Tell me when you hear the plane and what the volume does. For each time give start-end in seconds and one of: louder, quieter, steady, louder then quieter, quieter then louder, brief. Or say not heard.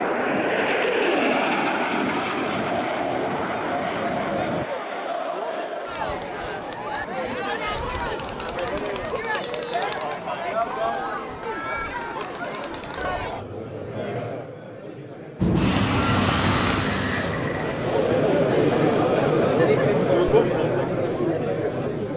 0.0-4.7 quieter
15.3-19.4 quieter.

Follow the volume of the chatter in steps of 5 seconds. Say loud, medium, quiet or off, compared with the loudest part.
medium, medium, medium, loud, loud.